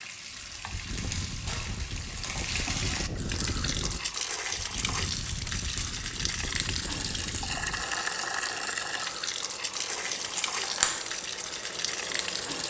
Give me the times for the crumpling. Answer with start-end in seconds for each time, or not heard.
0.9-2.6, 5.0-6.0, 9.9-11.0.